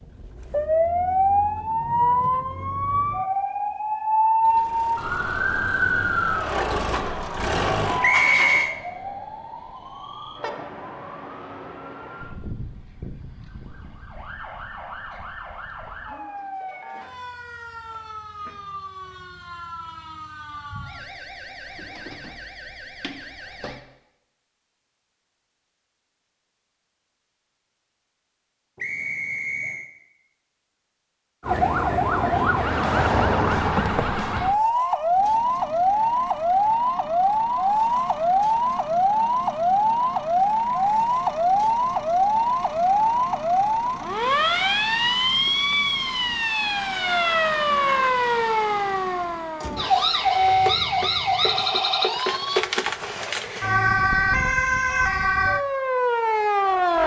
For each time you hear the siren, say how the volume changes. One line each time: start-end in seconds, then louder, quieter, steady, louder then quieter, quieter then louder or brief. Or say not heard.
0.0-23.9 quieter
31.4-57.0 steady.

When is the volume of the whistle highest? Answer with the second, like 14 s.
8 s.